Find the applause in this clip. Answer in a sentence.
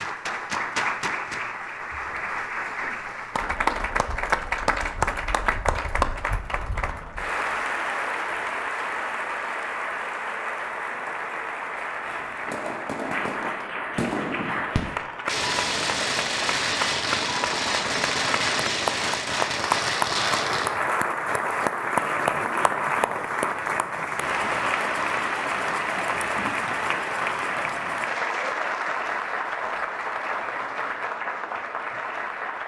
The applause can be heard from 0.0 to 32.6 s.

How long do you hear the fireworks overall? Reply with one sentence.
The fireworks can be heard for 8 seconds in total.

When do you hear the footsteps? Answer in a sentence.
You can't hear the footsteps here.